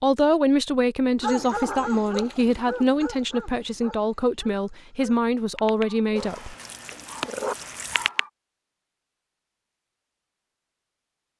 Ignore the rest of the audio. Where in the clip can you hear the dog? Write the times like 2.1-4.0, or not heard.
1.2-8.3.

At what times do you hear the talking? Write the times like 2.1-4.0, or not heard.
0.0-6.5.